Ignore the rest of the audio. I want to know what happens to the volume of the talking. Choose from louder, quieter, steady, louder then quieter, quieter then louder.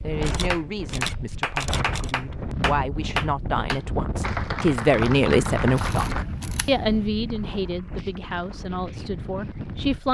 louder then quieter.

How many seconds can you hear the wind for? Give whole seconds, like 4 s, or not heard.
10 s.